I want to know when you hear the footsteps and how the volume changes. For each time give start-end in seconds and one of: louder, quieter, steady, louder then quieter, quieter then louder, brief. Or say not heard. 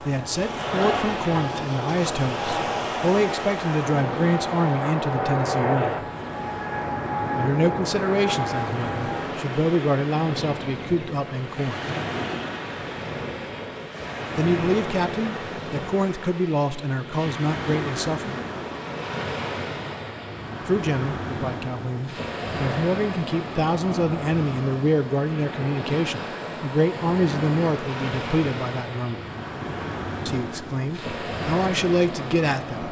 not heard.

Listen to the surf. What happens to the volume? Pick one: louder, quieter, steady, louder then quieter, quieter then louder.
steady.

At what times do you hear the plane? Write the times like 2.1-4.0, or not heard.
0.0-9.4.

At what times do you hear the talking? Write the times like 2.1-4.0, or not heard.
0.0-6.0, 7.3-11.8, 14.3-18.4, 20.6-29.2, 30.2-32.8.